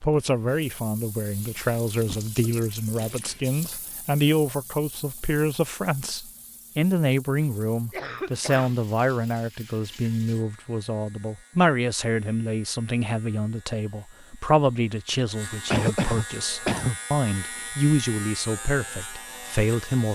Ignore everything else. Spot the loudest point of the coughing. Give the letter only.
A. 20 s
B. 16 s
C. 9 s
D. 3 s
B.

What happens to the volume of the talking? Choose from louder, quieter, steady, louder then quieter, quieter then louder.
steady.